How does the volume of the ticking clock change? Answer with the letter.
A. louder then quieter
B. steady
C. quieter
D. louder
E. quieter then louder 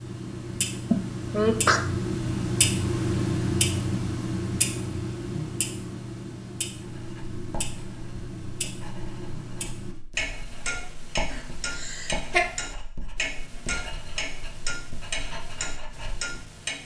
C.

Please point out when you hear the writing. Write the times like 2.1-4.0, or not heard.
6.8-16.4.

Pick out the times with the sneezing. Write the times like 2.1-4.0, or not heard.
0.9-1.8, 11.3-12.5.